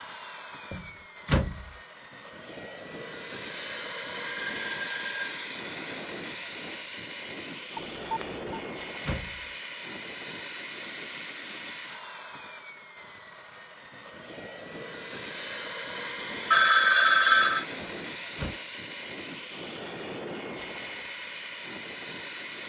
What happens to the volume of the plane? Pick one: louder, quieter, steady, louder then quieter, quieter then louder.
steady.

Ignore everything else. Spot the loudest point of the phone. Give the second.
17 s.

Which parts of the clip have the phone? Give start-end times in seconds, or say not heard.
4.2-5.6, 7.8-8.4, 16.5-17.6.